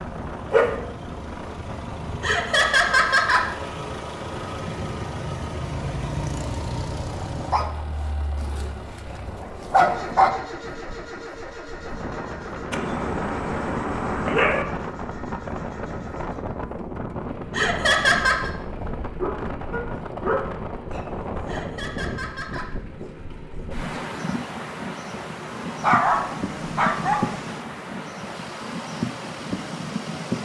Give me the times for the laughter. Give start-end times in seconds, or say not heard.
2.2-3.5, 17.5-18.5, 21.4-22.7.